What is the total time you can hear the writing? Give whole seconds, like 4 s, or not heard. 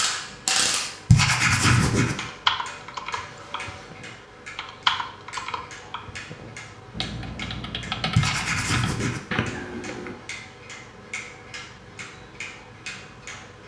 2 s.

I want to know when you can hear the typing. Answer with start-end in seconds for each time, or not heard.
2.2-10.2.